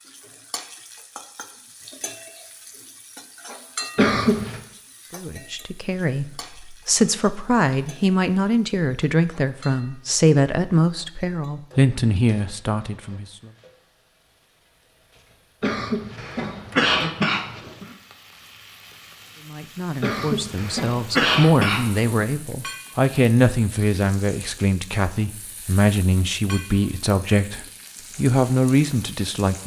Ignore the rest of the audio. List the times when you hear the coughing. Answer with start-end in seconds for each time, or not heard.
4.0-4.6, 15.6-17.9, 20.0-22.1.